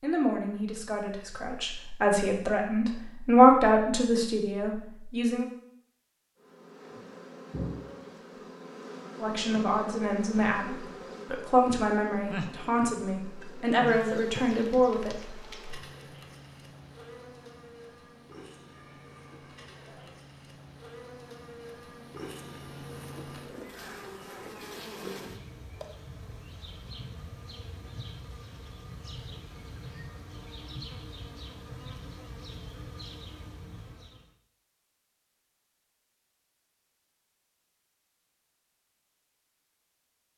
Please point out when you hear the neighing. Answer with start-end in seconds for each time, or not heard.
18.7-20.1.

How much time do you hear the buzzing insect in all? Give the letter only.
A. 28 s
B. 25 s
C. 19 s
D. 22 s
A.